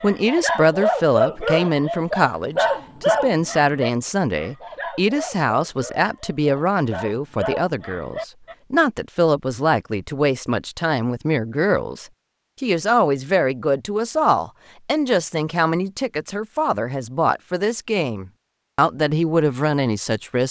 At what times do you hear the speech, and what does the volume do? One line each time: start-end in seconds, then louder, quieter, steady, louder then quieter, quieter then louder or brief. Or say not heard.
0.0-20.4 steady.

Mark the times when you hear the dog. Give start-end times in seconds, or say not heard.
0.0-8.6.